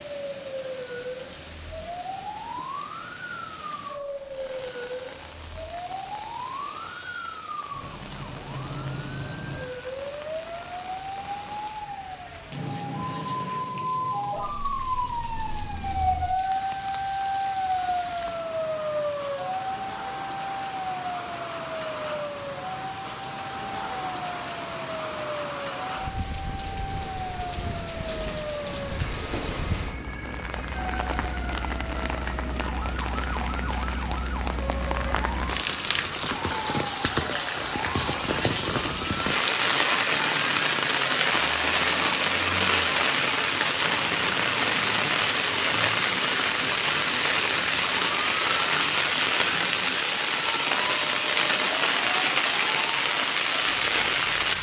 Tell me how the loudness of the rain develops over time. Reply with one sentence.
The loudness of the rain goes up.